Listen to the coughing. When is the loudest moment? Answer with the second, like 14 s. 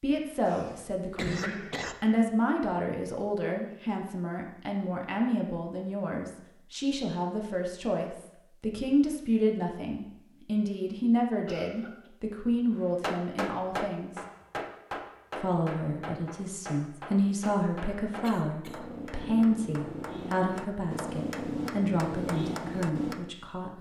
1 s.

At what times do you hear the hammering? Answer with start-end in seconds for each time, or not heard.
13.0-23.3.